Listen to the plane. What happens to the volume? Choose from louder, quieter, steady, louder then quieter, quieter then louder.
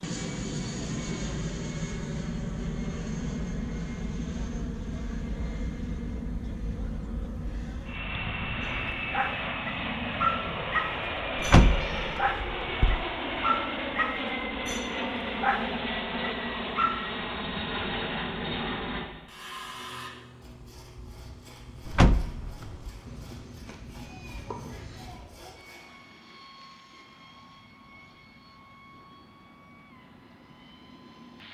quieter.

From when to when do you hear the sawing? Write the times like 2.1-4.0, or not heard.
19.2-25.9.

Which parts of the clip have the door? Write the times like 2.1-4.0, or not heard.
11.3-13.1, 21.9-22.9.